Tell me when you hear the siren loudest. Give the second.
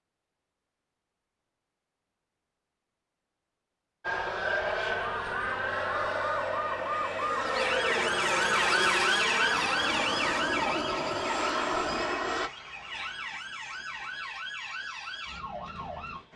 9 s.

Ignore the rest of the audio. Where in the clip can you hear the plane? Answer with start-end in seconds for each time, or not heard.
4.0-12.5.